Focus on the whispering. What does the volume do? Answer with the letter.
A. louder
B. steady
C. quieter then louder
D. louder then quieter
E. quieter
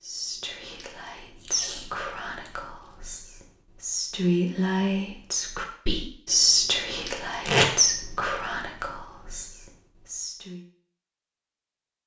D.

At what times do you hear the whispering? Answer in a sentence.
The whispering can be heard from 0.0 to 10.6 s.